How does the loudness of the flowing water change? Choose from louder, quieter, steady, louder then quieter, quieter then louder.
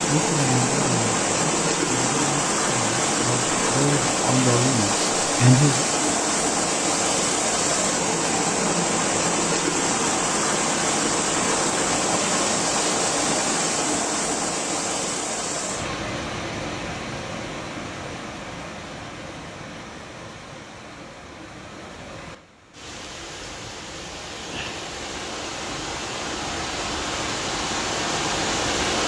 quieter then louder.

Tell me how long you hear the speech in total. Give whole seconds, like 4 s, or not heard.
6 s.